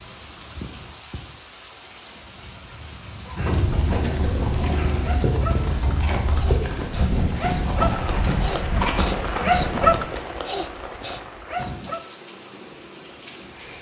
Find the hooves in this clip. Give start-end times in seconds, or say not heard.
3.4-9.9.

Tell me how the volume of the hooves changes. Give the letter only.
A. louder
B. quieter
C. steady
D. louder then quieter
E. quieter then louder
C.